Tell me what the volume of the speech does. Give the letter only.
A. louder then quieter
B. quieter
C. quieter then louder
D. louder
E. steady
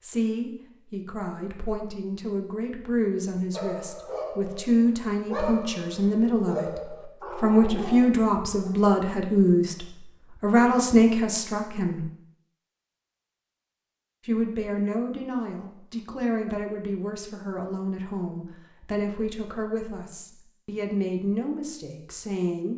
A.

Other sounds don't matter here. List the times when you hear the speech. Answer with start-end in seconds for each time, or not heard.
0.0-12.1, 14.2-22.7.